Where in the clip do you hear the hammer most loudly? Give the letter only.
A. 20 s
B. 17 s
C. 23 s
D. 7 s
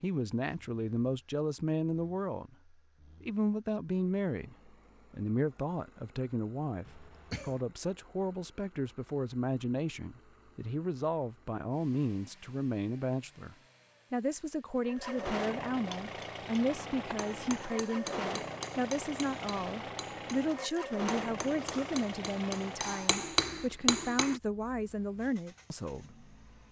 C.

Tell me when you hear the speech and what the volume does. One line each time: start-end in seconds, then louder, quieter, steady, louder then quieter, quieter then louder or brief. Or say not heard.
0.0-26.6 steady.